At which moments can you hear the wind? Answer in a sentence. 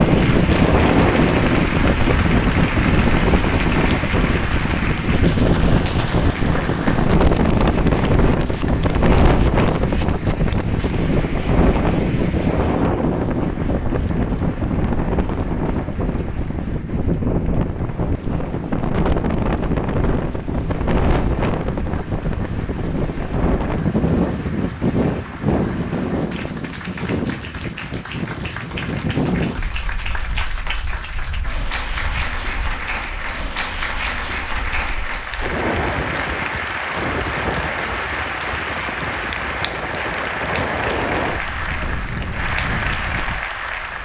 The wind can be heard from 0.0 to 43.9 s.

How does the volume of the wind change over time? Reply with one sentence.
The volume of the wind goes down.